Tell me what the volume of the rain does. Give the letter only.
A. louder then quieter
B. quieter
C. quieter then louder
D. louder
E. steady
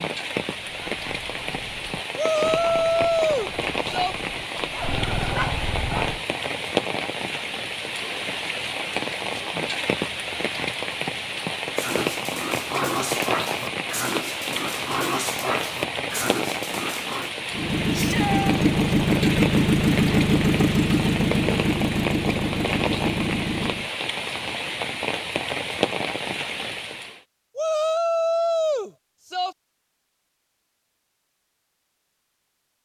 E.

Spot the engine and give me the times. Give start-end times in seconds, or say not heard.
17.5-23.9.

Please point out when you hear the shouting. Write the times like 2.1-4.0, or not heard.
2.1-4.2, 17.9-18.6, 27.6-29.6.